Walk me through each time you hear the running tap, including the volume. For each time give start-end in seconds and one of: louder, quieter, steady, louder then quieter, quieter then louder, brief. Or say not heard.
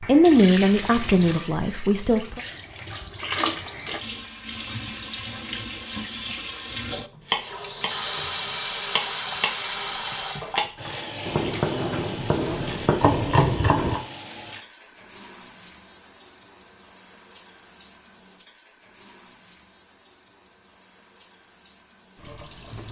0.0-22.8 quieter.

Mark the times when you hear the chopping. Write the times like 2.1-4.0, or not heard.
7.2-10.7, 11.2-14.0.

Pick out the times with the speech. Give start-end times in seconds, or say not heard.
0.0-2.4.